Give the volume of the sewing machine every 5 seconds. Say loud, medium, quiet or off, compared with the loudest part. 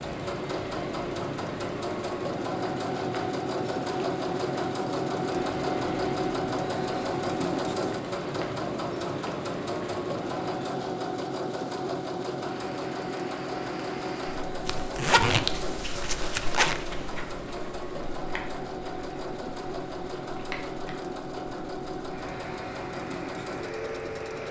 loud, loud, loud, medium, medium.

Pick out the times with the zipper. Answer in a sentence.
You can hear the zipper from 14.7 to 16.8 s.